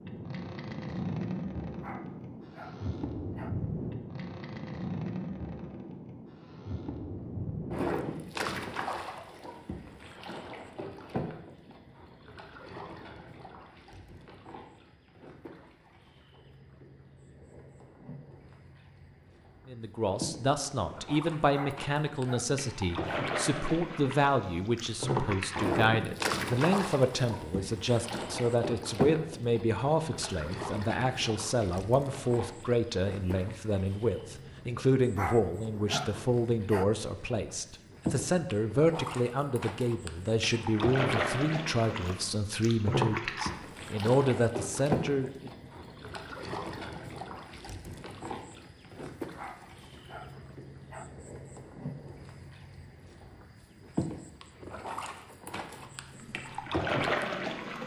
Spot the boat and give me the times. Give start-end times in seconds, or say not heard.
0.0-57.8.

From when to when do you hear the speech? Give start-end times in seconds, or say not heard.
19.6-45.5.